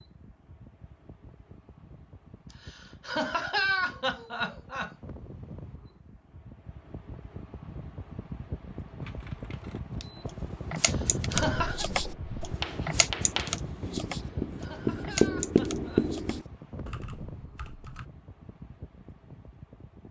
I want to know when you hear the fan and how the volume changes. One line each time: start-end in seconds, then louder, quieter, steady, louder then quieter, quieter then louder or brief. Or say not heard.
0.0-20.0 louder then quieter.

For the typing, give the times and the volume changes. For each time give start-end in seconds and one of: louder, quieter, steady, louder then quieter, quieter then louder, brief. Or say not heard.
9.0-18.1 louder then quieter.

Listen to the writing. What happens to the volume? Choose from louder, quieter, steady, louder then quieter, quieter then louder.
louder.